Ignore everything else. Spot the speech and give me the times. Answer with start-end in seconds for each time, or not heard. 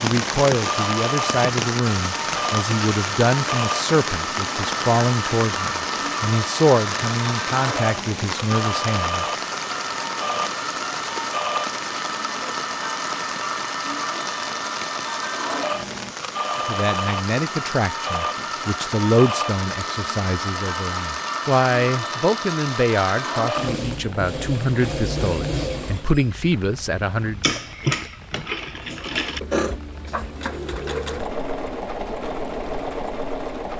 0.0-9.2, 16.6-27.4.